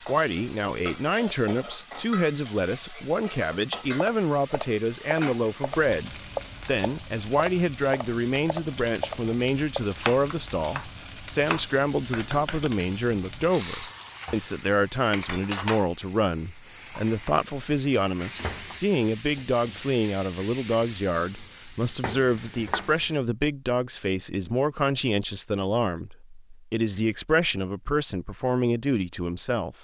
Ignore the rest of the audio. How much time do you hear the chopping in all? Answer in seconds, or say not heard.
9 s.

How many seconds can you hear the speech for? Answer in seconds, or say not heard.
30 s.